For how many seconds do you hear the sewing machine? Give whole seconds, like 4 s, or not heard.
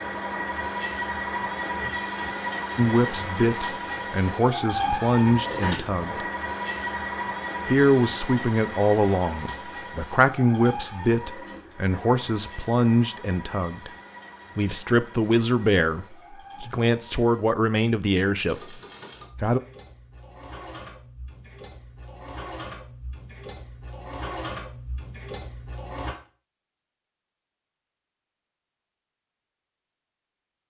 26 s.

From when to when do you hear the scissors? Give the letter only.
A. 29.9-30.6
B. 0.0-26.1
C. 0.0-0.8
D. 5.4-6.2
D.